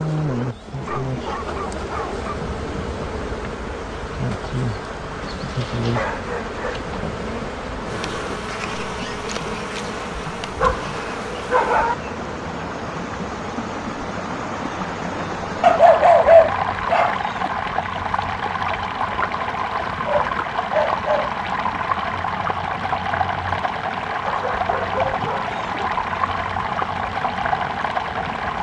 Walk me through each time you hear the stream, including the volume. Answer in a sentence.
The stream can be heard from 0.0 to 28.5 s, getting louder.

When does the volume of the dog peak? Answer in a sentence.
The volume of the dog peaks at 16 seconds.